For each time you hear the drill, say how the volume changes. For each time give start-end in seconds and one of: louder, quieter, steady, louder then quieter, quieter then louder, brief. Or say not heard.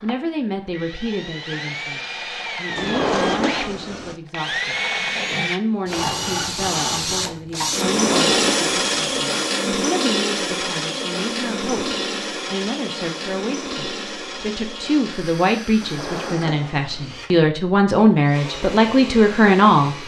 0.0-20.0 louder then quieter.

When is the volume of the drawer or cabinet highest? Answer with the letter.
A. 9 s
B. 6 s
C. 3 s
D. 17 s
C.